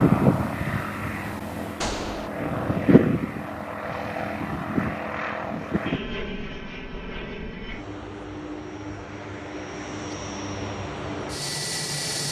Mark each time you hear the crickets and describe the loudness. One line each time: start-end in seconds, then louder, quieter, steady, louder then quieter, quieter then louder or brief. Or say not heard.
not heard.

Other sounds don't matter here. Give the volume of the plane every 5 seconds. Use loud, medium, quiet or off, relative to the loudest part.
loud, medium, medium.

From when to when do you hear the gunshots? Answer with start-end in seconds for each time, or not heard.
1.8-2.3.